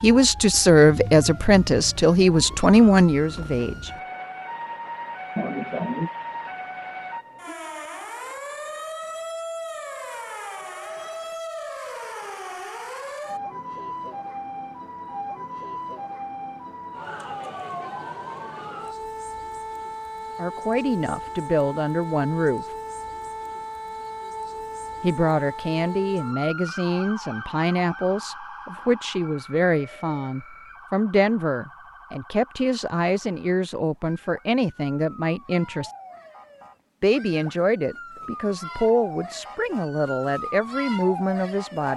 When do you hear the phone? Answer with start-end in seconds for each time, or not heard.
not heard.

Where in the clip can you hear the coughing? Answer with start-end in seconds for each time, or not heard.
5.3-6.1.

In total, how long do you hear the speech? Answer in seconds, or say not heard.
22 s.